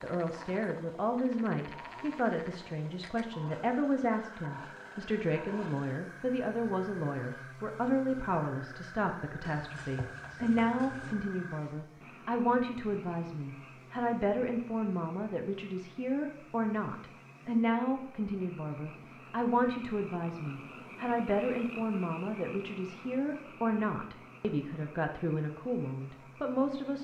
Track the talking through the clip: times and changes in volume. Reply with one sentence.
The talking can be heard from 0.0 to 26.9 s, at a steady volume.